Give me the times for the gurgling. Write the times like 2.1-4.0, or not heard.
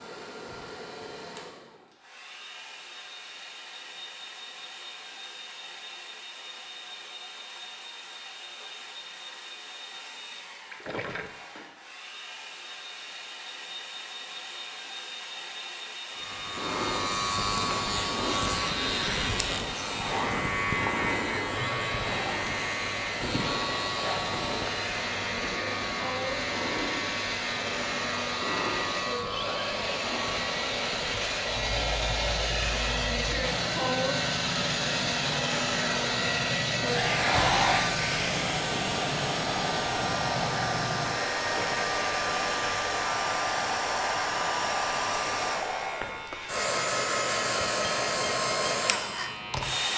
10.7-11.3, 41.3-42.0.